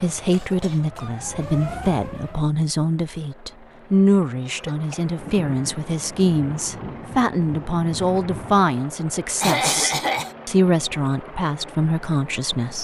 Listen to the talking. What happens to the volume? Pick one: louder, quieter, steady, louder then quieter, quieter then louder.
steady.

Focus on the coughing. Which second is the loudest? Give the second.
10 s.